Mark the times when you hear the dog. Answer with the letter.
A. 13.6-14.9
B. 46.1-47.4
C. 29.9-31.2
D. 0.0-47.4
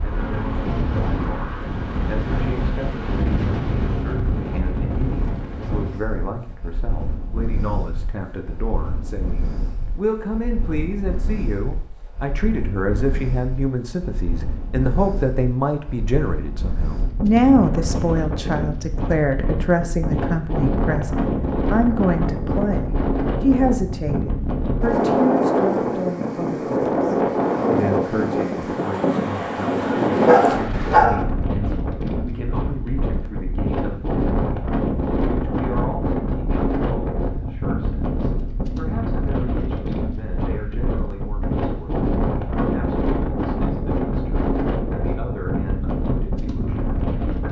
C.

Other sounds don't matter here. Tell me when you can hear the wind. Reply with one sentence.
You can hear the wind from 0.0 to 47.4 s.